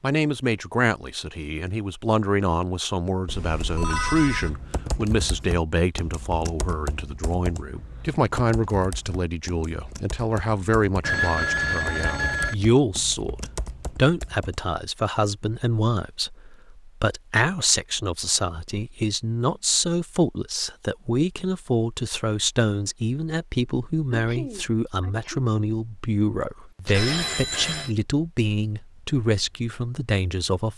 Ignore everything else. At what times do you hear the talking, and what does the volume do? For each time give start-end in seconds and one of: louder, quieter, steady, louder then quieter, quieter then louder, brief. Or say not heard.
0.0-30.7 steady.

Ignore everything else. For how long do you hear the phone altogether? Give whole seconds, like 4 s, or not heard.
4 s.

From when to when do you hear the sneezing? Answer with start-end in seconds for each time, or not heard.
24.1-25.4.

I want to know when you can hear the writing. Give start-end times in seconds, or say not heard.
not heard.